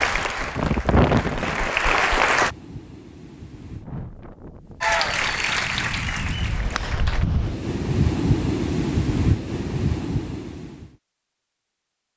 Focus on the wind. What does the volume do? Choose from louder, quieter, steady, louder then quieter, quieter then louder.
quieter then louder.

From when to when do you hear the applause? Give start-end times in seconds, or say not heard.
0.0-2.5, 4.8-7.2.